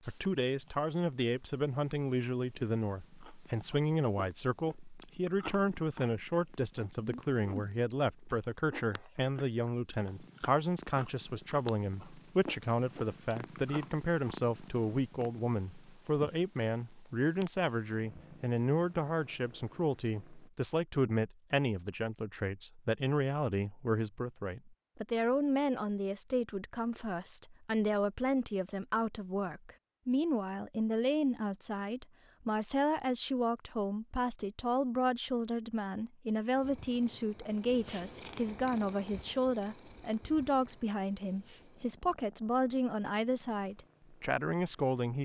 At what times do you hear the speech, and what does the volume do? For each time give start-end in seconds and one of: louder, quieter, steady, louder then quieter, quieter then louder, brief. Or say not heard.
0.1-45.1 steady.